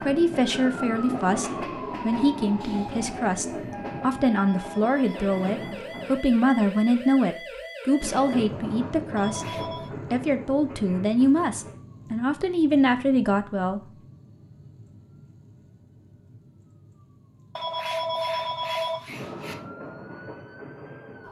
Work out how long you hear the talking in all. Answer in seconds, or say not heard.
13 s.